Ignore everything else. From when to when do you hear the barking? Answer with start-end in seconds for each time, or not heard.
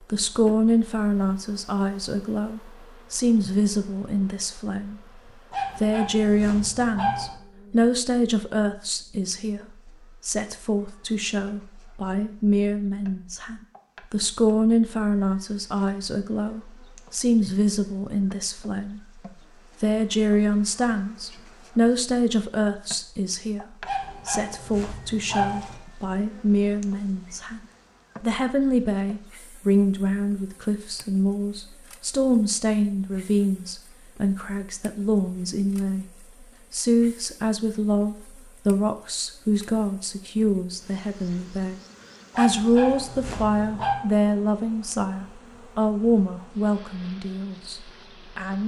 5.5-7.3, 23.9-25.8, 42.3-44.0.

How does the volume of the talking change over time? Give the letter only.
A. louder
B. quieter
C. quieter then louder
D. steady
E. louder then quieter
D.